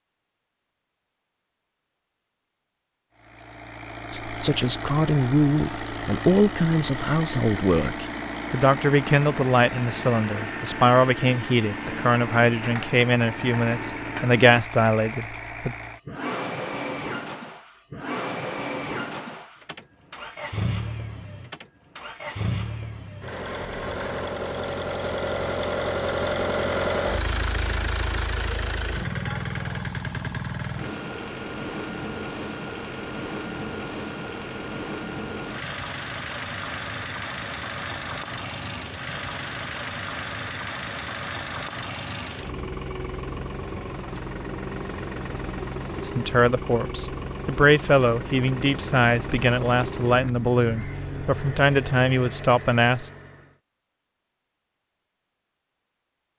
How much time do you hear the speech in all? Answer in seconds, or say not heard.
19 s.